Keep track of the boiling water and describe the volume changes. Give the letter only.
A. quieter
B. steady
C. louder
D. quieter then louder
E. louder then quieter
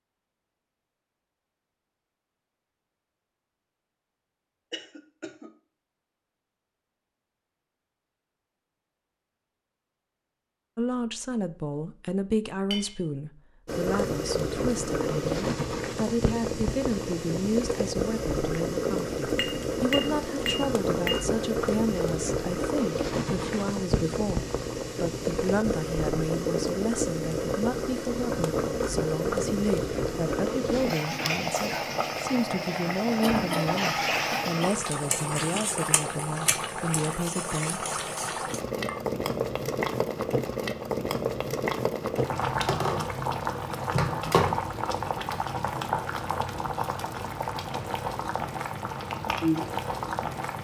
B.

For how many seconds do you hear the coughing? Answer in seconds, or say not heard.
2 s.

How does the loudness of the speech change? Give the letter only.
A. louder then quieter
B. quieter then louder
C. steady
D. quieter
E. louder
C.